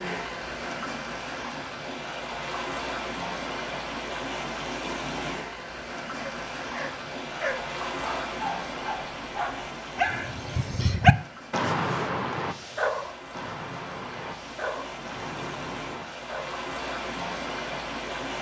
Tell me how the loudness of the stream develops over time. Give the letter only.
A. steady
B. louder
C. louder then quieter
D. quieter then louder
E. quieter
D.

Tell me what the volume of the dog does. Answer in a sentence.
The volume of the dog goes up, then down.